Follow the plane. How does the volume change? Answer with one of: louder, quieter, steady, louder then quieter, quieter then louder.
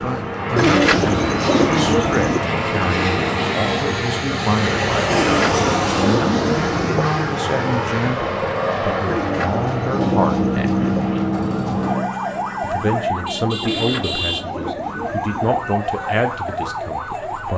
steady.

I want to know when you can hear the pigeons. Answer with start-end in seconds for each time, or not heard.
0.6-2.5, 5.1-7.0, 9.1-11.0, 13.6-15.7.